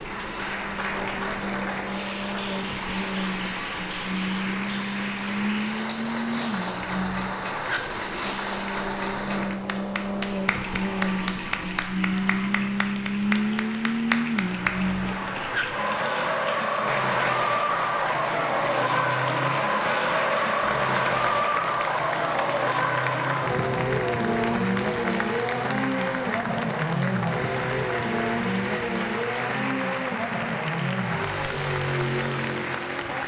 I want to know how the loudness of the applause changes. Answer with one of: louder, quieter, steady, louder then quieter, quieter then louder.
steady.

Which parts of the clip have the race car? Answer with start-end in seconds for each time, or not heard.
0.0-33.2.